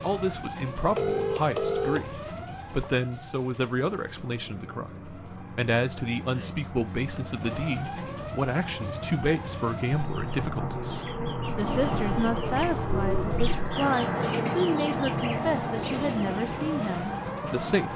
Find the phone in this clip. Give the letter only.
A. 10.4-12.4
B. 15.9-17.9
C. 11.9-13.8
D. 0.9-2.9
D.